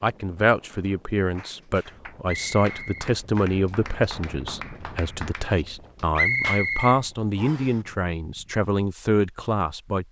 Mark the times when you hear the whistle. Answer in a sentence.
The whistle can be heard from 2.5 to 3.1 s and from 6.2 to 7.7 s.